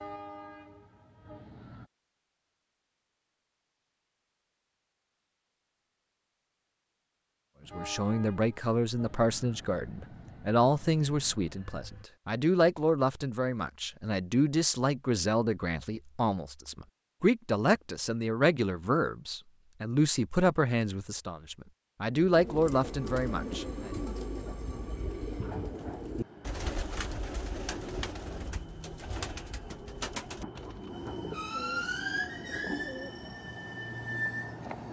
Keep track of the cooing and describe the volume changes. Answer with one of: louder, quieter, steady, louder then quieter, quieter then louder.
quieter.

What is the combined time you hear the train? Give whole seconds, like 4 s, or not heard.
19 s.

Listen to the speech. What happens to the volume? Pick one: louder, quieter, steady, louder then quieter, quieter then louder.
steady.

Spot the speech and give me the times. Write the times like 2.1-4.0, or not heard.
7.8-23.9.